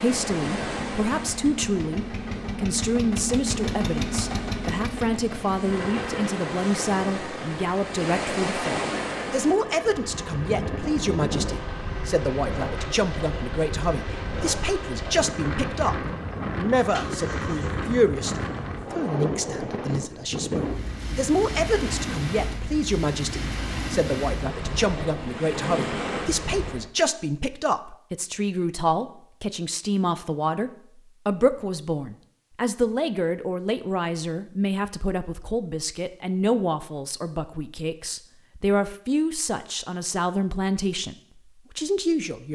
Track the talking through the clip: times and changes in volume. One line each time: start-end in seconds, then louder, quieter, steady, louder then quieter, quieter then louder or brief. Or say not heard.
0.0-42.4 steady.